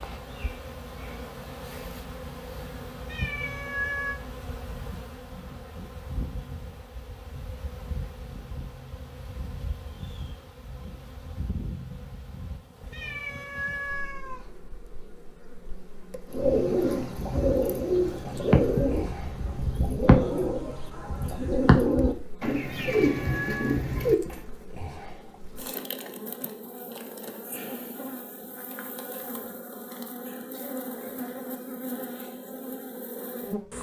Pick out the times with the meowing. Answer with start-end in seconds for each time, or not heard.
3.0-4.2, 12.9-14.4, 22.6-23.8.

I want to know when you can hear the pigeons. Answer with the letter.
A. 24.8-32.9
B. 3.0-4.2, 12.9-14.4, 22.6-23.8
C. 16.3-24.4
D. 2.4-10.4
C.